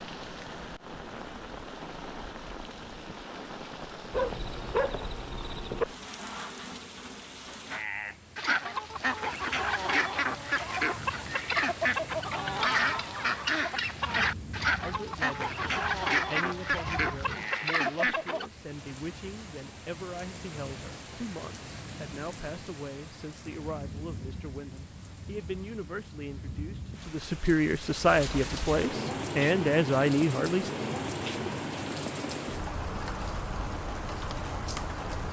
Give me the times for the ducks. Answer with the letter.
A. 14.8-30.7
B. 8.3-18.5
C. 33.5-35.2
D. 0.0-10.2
B.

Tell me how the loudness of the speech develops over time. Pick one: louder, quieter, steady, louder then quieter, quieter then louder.
louder.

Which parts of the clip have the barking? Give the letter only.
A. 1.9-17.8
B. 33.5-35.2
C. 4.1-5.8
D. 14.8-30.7
C.